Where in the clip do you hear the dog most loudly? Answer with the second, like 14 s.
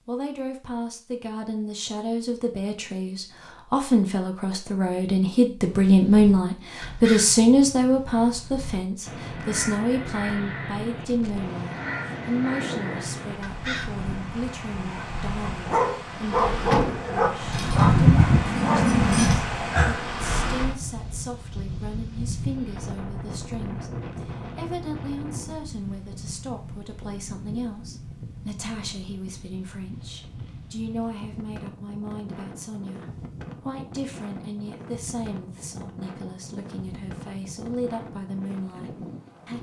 18 s.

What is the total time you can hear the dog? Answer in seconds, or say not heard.
6 s.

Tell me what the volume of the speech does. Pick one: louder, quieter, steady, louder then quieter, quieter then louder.
quieter.